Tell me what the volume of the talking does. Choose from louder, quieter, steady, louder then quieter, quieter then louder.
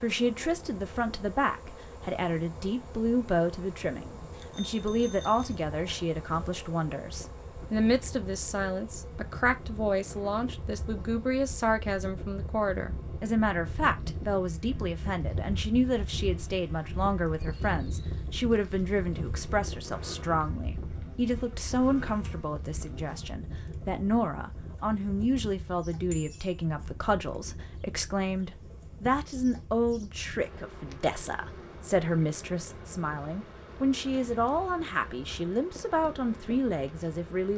steady.